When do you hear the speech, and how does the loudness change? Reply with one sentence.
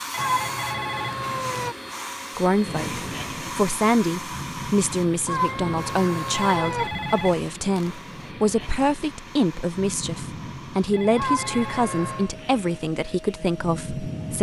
You can hear the speech from 2.4 to 14.3 s, at a steady volume.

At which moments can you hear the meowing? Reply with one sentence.
You can hear the meowing from 0.1 to 1.8 s, from 5.2 to 6.9 s and from 11.2 to 12.3 s.